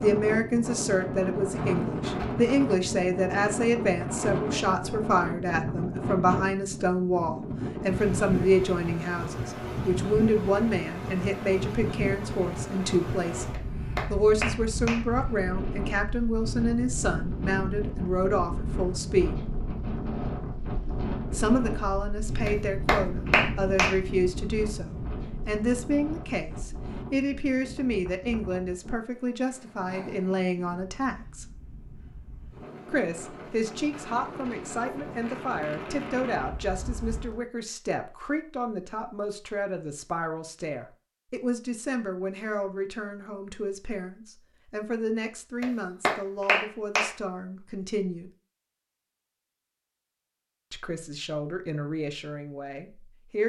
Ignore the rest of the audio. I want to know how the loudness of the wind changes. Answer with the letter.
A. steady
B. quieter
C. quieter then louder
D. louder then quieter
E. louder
B.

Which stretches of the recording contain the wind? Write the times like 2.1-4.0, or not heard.
0.0-37.4.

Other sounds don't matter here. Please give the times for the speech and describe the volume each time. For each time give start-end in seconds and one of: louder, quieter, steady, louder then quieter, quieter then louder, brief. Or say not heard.
0.0-19.4 steady
21.3-31.4 steady
32.9-48.3 steady
50.7-53.4 brief.